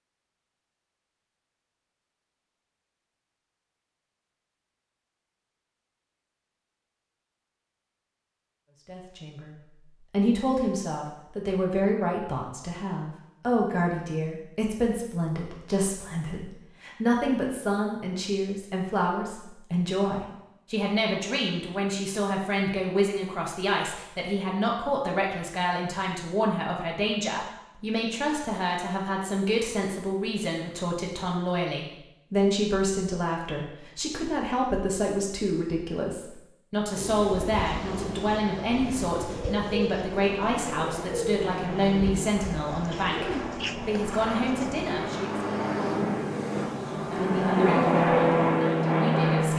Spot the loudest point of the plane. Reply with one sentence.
The volume of the plane peaks at 48 seconds.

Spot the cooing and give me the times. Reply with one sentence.
The cooing can be heard from 37.0 to 44.9 s.